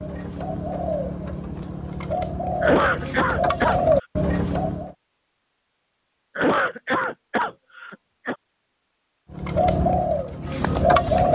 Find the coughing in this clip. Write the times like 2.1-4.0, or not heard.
2.6-3.8, 6.3-8.3.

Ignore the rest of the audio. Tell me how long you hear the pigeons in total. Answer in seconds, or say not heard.
7 s.